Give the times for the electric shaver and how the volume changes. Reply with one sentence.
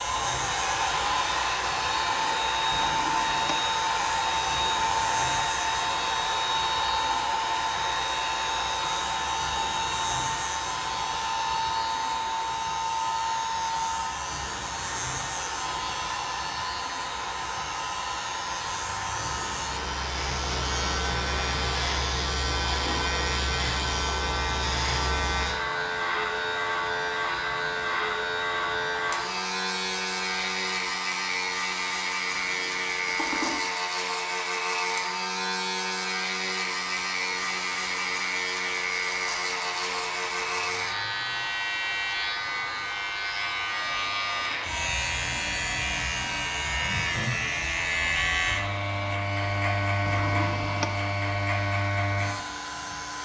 The electric shaver can be heard from 0.0 to 53.2 s, getting louder.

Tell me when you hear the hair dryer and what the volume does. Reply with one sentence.
The hair dryer can be heard from 0.0 to 53.2 s, getting quieter.